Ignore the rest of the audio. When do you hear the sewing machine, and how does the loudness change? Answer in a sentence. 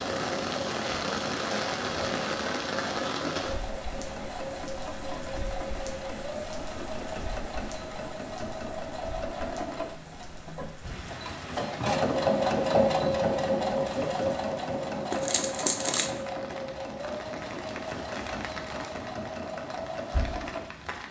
The sewing machine can be heard from 0.0 to 21.0 s, getting louder then quieter.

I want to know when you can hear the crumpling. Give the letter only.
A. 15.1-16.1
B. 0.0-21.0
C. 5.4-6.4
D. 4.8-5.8
A.